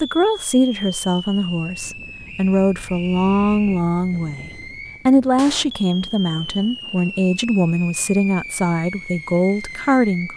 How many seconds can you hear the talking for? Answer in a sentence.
The talking can be heard for 10 seconds in total.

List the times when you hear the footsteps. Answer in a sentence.
You can't hear the footsteps here.